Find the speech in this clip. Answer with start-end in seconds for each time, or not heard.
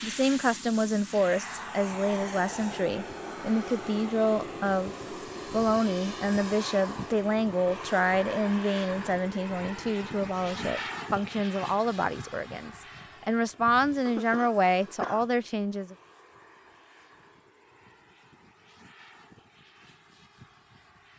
0.0-15.9.